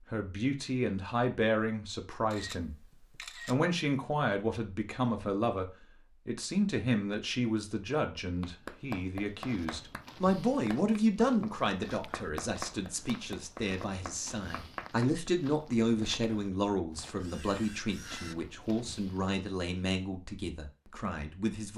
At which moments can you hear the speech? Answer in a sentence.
You can hear the speech from 0.1 to 2.8 s and from 3.5 to 21.7 s.